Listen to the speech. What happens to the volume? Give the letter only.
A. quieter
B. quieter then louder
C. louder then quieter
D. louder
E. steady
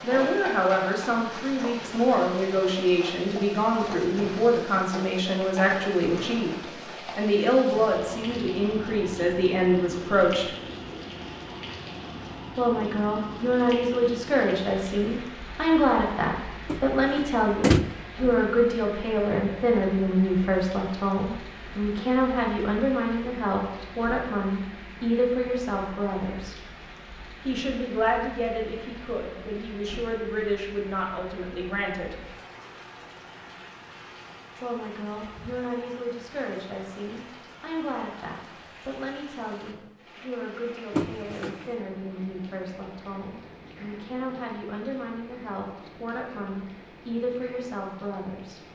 A.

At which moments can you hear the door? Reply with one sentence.
You can hear the door from 16.6 to 17.9 s and from 40.9 to 41.7 s.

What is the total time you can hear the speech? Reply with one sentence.
The speech can be heard for 43 seconds in total.